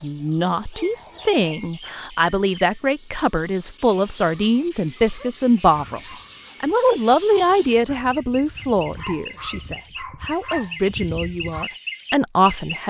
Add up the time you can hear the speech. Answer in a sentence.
The speech can be heard for 12 seconds in total.